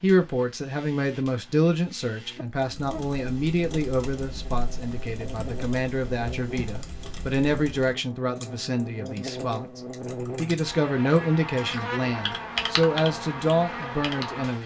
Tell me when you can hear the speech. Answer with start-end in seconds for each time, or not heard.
0.0-14.6.